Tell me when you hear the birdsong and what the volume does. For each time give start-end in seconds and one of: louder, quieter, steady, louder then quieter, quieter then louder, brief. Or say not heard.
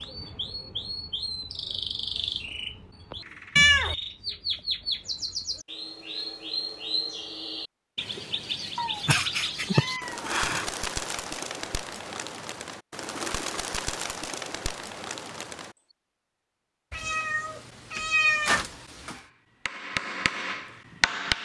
0.0-15.8 steady.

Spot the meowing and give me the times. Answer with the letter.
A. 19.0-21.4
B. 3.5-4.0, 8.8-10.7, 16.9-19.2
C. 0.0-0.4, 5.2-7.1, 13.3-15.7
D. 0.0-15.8
B.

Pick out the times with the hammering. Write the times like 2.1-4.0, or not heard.
19.0-21.4.